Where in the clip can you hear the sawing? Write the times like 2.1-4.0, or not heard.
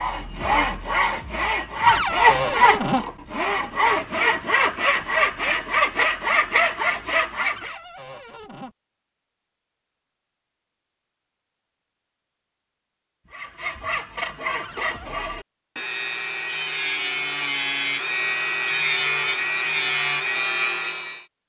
0.0-7.8, 13.3-21.2.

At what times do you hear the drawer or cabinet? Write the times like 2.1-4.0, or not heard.
1.9-3.0, 7.5-8.8, 14.6-15.2.